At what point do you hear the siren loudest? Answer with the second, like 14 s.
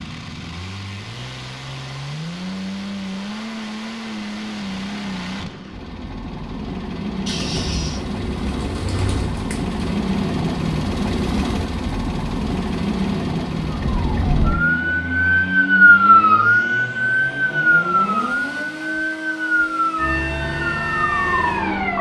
16 s.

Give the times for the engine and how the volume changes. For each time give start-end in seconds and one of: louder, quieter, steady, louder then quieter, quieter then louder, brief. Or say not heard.
0.0-21.9 louder then quieter.